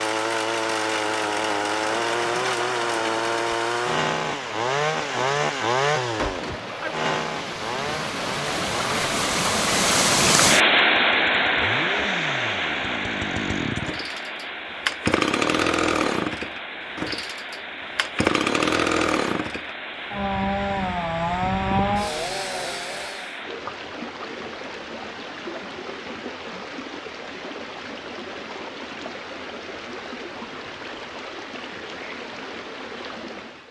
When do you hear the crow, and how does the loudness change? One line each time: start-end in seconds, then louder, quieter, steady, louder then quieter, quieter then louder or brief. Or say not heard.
not heard.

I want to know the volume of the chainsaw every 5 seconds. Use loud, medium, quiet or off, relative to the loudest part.
loud, loud, medium, loud, loud, off, off.